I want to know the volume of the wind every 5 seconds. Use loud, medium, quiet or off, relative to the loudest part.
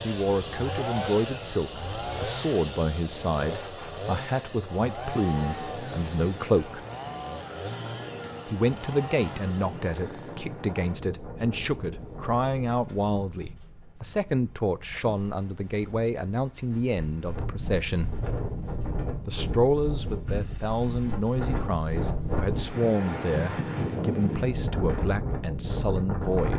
quiet, medium, medium, medium, loud, loud.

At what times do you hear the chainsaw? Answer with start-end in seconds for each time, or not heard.
0.0-10.6.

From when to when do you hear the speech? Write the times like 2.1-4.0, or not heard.
0.0-6.8, 8.4-18.1, 19.2-26.5.